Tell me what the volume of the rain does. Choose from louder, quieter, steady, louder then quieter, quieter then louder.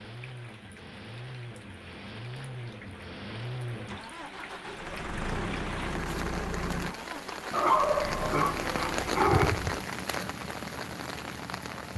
louder.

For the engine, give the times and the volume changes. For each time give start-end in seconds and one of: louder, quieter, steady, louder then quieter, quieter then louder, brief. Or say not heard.
0.0-11.9 louder then quieter.